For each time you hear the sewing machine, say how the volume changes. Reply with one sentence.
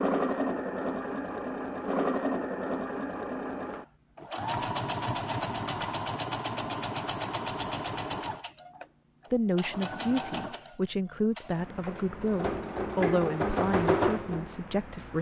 The sewing machine can be heard from 0.0 to 15.1 s, getting quieter then louder.